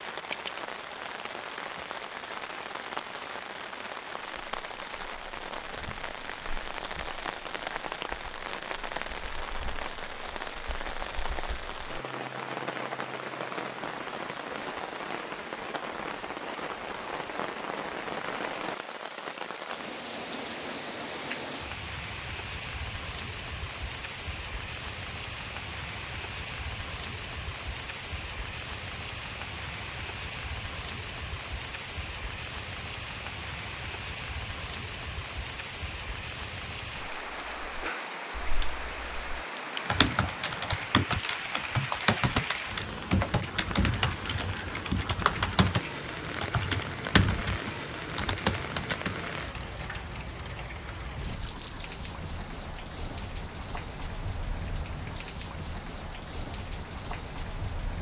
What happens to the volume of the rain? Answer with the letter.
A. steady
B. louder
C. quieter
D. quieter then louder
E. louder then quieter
A.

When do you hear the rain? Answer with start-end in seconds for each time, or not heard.
0.0-57.9.